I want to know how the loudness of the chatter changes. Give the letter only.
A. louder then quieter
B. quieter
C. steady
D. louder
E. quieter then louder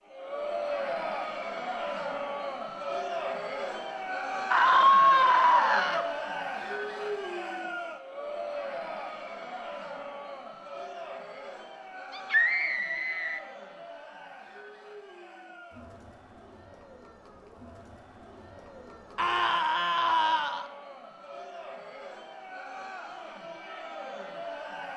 E.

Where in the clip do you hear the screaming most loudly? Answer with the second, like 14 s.
5 s.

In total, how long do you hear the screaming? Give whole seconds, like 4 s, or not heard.
4 s.